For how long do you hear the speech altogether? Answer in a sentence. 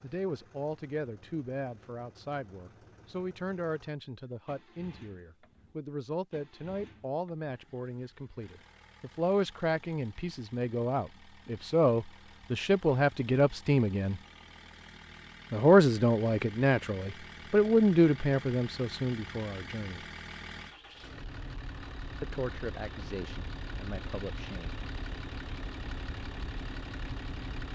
The speech can be heard for 21 seconds in total.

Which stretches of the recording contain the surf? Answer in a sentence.
The surf can't be heard in this clip.